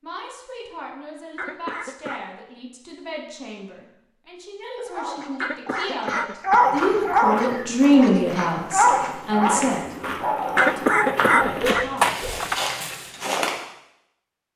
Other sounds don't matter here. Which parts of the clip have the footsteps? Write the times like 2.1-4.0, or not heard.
6.5-13.7.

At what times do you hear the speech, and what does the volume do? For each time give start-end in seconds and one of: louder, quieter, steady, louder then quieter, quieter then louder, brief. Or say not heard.
0.0-9.9 louder
10.8-12.3 brief.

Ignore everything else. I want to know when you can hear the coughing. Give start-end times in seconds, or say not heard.
1.4-2.2, 5.4-6.7, 10.6-12.6.